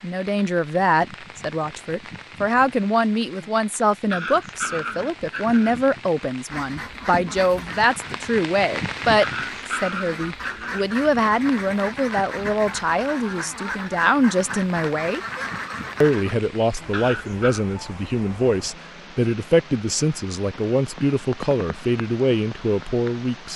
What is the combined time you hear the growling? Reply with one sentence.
The growling can be heard for 4 seconds in total.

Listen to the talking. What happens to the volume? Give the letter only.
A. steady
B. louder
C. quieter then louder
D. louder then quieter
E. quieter
A.